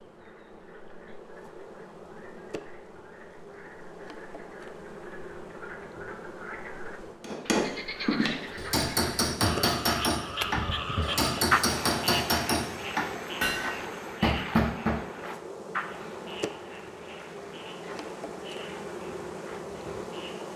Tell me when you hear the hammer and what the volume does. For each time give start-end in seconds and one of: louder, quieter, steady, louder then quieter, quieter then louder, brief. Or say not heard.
7.2-15.0 steady.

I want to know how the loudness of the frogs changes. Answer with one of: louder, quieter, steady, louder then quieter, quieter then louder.
louder then quieter.